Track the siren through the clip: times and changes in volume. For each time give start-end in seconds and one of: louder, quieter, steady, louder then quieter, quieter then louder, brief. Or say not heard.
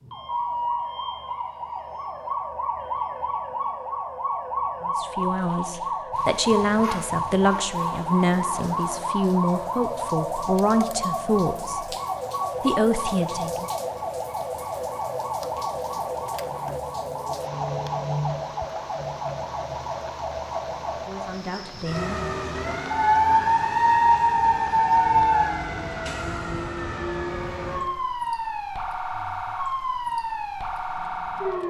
0.0-31.6 steady.